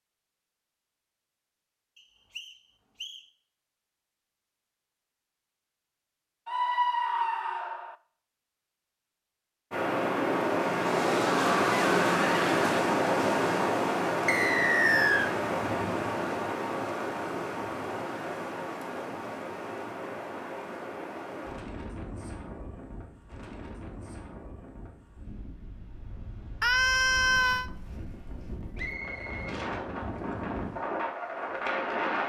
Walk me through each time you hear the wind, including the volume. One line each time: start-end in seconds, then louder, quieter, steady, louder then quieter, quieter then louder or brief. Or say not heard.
9.7-32.2 quieter then louder.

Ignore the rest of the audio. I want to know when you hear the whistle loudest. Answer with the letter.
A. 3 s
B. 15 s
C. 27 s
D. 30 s
B.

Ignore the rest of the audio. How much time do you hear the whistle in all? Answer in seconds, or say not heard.
3 s.